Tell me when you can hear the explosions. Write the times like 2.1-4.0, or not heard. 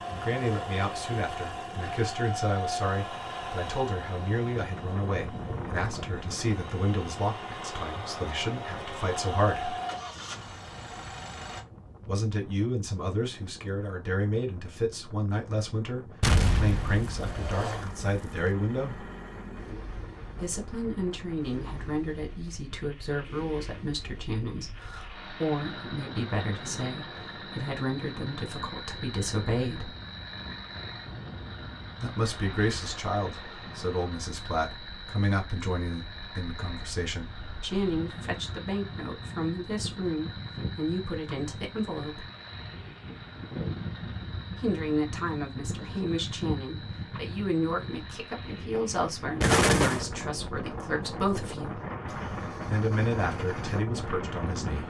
16.2-18.4, 49.4-50.0.